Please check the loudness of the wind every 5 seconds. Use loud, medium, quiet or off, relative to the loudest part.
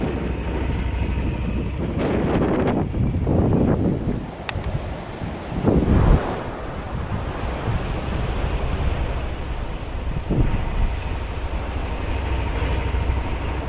loud, loud, medium.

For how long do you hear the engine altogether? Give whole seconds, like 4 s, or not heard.
10 s.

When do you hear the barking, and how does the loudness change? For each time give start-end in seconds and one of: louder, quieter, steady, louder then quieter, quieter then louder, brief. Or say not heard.
not heard.